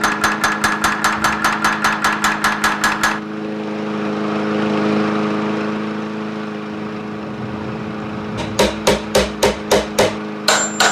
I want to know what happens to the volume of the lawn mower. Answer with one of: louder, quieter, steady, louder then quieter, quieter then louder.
louder then quieter.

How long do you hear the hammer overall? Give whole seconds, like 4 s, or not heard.
6 s.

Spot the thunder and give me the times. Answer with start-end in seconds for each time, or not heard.
6.7-8.8.